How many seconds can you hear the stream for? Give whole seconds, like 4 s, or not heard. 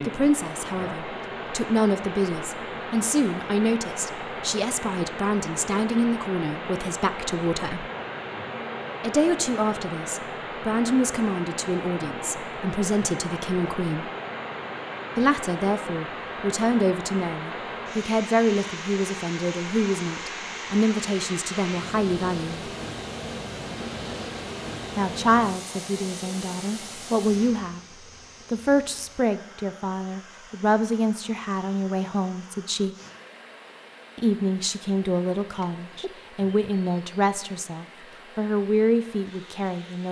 40 s.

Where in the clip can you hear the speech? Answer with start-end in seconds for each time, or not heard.
0.0-7.8, 9.0-14.1, 15.2-22.7, 24.9-27.8, 28.5-33.0, 34.1-40.0.